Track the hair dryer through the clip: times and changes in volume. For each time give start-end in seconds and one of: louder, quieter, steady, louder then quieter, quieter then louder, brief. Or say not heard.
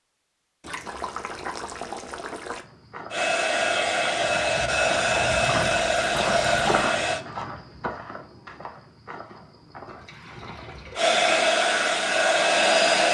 3.1-7.2 steady
10.9-13.0 brief.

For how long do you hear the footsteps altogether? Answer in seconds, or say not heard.
8 s.